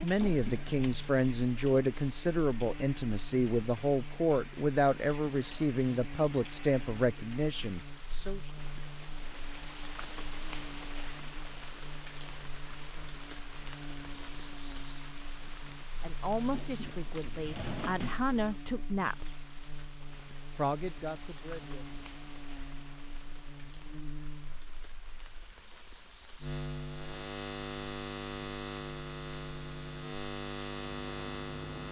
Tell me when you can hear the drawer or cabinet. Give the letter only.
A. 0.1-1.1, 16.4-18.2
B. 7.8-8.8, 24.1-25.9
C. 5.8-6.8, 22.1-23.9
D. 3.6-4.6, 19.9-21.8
A.